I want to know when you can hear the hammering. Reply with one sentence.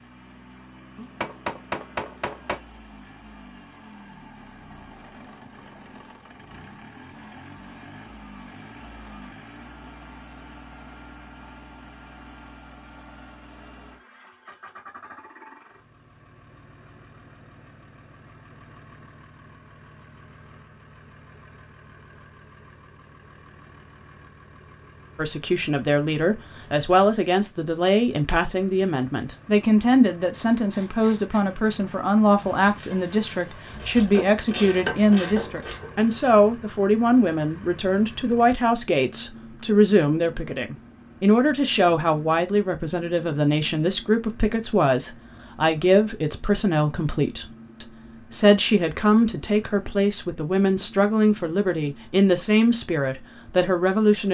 The hammering can be heard from 0.9 to 2.6 s.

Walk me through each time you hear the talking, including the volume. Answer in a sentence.
The talking can be heard from 25.1 to 54.2 s, at a steady volume.